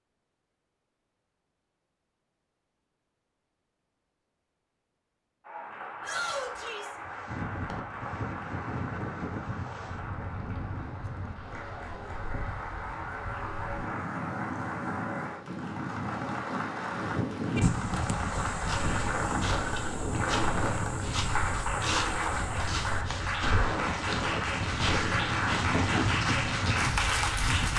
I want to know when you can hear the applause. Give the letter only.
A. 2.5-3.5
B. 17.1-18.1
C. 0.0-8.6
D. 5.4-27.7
D.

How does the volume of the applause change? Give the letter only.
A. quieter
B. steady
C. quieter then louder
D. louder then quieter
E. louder
E.